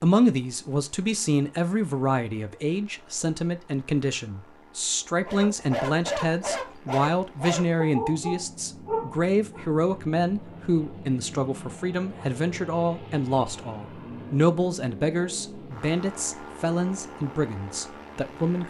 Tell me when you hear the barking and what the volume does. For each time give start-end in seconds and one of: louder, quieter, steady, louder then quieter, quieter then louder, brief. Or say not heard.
5.2-9.7 steady.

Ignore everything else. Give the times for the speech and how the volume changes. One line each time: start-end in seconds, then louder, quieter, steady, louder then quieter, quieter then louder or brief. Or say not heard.
0.0-18.6 steady.